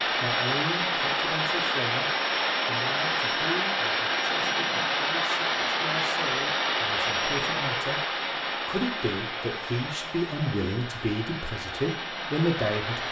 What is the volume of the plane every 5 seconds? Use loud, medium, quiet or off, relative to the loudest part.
loud, loud, medium.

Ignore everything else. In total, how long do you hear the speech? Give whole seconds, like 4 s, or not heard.
13 s.